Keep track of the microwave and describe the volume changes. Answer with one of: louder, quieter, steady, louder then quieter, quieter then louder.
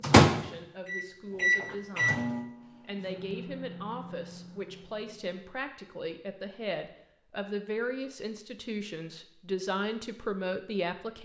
louder then quieter.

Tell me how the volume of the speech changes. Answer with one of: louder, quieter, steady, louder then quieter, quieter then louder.
louder.